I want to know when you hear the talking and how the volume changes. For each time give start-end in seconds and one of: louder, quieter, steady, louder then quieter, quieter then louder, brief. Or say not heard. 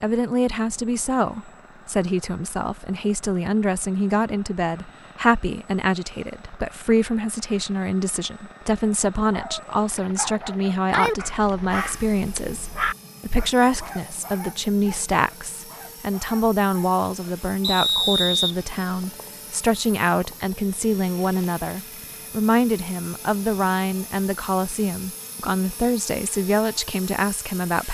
0.0-27.8 steady.